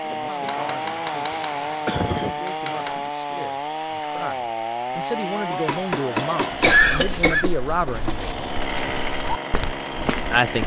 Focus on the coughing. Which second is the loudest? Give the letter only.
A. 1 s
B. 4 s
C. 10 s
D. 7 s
D.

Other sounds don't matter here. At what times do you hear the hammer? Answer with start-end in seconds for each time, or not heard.
0.4-3.1, 5.5-8.2.